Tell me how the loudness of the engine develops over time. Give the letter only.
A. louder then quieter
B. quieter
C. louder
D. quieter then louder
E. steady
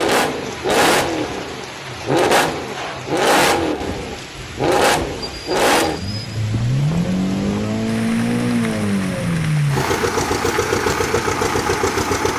E.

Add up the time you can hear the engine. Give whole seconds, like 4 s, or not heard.
12 s.